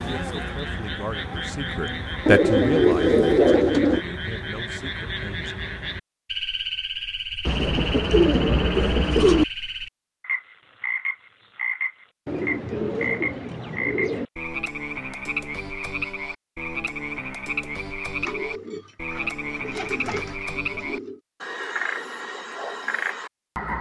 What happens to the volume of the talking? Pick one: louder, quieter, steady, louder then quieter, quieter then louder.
louder then quieter.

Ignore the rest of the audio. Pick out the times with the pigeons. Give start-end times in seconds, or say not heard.
2.2-4.0, 7.5-9.4, 12.2-14.2, 18.2-21.2.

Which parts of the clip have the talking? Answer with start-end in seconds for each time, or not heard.
0.0-5.6.